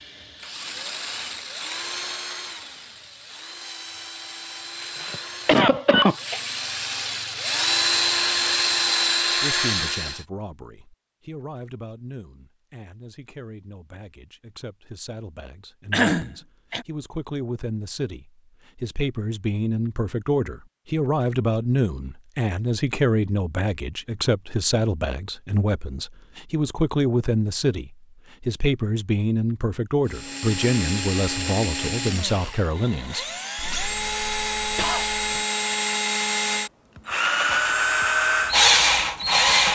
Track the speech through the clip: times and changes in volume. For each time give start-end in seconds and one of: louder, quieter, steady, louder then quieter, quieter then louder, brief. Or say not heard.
9.4-33.2 louder.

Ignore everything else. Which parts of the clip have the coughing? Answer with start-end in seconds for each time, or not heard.
4.8-6.6, 15.9-16.9, 33.5-35.5.